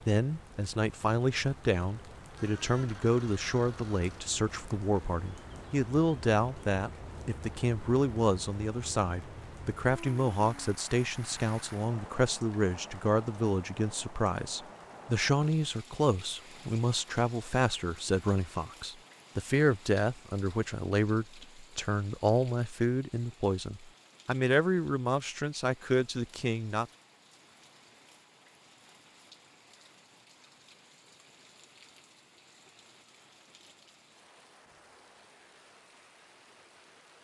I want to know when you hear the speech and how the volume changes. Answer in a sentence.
You can hear the speech from 0.1 to 26.9 s, at a steady volume.